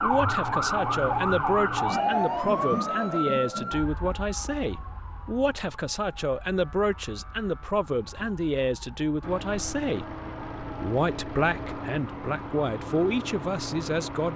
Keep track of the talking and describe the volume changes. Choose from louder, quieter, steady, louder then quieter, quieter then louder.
steady.